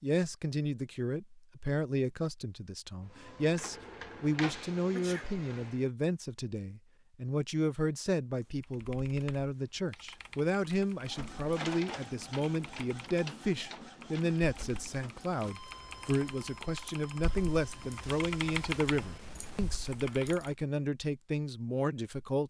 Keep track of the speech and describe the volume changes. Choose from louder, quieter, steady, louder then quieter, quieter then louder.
steady.